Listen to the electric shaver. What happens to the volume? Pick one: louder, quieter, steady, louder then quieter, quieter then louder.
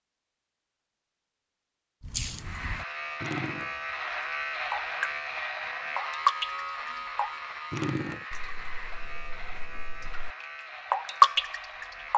quieter.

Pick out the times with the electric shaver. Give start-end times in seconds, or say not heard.
2.4-12.1.